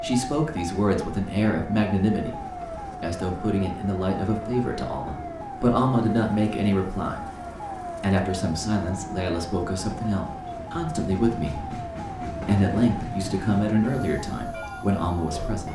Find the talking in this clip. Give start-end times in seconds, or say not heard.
0.0-2.4, 3.0-7.2, 8.0-11.7, 12.4-15.7.